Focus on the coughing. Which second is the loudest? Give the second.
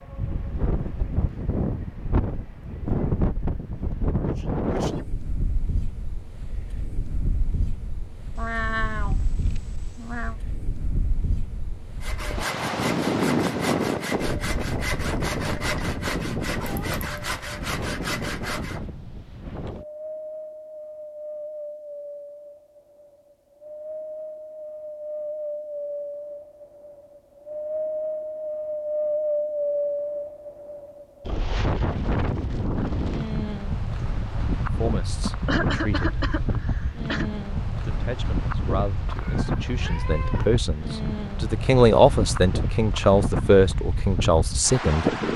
36 s.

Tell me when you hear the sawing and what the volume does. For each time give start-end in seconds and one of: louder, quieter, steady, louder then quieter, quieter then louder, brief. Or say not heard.
12.0-18.8 steady.